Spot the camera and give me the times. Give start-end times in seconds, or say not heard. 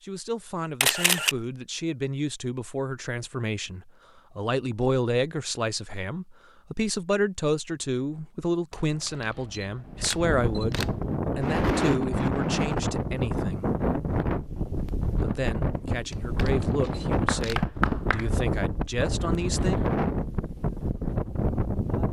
0.8-1.4, 8.7-11.2, 16.1-17.6.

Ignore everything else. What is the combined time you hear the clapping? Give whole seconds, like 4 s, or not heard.
2 s.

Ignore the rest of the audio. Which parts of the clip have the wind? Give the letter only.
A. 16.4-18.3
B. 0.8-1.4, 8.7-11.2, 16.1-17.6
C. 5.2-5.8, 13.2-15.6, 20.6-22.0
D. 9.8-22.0
D.